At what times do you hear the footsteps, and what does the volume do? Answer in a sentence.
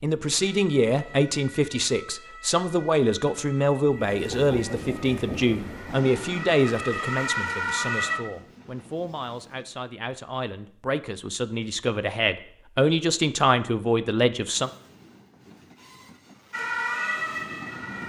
The footsteps can't be heard in this clip.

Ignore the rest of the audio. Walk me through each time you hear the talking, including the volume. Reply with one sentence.
You can hear the talking from 0.0 to 14.7 s, getting quieter then louder.